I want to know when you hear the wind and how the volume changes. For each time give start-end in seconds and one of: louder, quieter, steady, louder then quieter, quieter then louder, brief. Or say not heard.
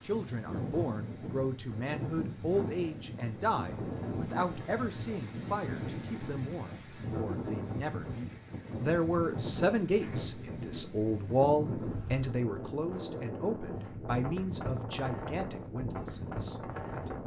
0.0-17.2 steady.